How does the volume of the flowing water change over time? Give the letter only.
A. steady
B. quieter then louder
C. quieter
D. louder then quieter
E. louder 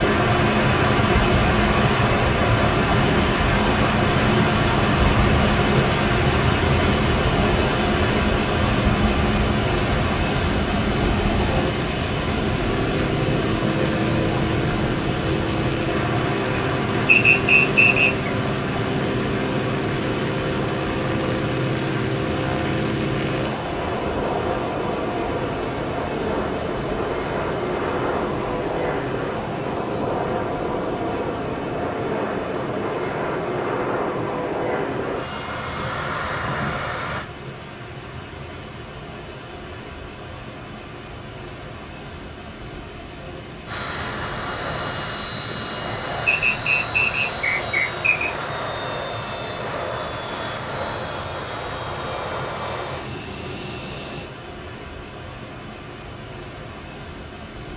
C.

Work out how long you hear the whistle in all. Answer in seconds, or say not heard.
3 s.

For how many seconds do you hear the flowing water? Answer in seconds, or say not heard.
58 s.